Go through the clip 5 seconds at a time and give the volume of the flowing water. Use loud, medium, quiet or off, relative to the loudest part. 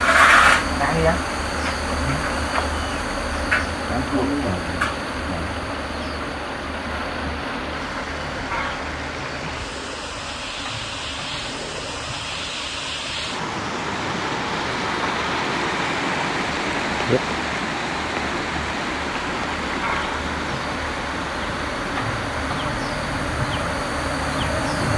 medium, medium, loud, loud, medium.